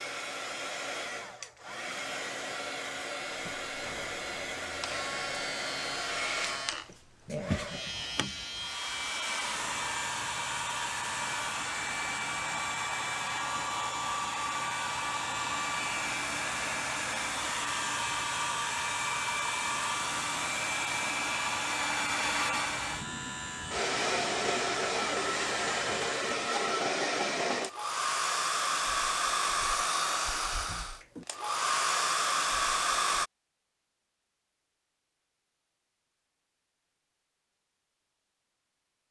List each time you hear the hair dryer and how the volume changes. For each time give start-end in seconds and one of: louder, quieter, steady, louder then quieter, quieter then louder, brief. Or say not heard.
0.0-33.3 louder.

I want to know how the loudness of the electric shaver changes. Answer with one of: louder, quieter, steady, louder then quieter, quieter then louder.
steady.